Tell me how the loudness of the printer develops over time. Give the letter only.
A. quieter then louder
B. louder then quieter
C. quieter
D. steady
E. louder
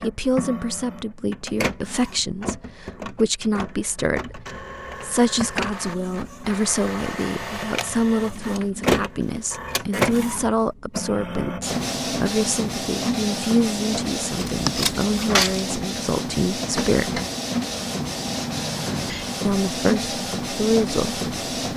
E.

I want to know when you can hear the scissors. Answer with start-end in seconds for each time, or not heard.
14.3-15.7.